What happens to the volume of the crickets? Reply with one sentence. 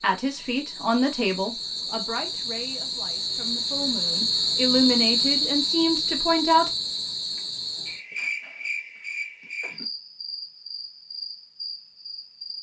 The volume of the crickets goes up, then down.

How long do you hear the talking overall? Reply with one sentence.
You can hear the talking for 7 seconds altogether.